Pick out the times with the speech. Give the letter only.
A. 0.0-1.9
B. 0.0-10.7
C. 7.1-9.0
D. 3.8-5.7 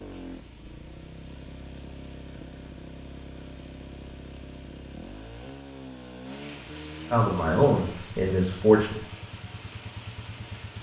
C.